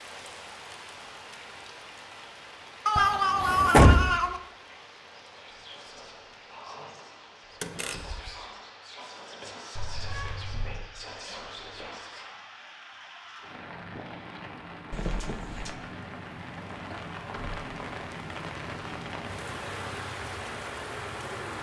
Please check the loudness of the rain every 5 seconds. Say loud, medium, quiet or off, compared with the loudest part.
medium, quiet, medium, loud, loud.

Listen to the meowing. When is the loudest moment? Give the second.
3 s.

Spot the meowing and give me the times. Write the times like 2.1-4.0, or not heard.
2.9-4.4, 9.8-10.8, 14.9-15.8.